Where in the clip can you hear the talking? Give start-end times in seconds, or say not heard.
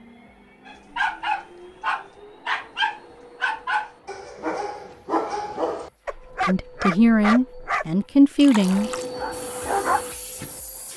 6.5-8.9.